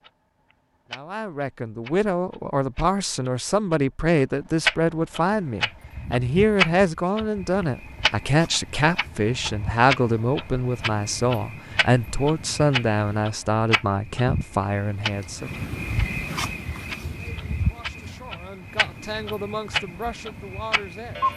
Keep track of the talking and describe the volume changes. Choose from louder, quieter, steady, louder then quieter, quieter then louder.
quieter.